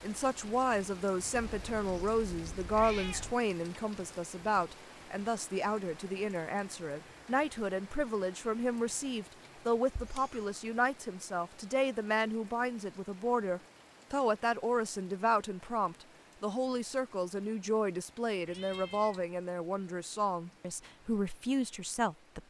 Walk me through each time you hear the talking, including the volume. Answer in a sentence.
The talking can be heard from 0.0 to 22.4 s, at a steady volume.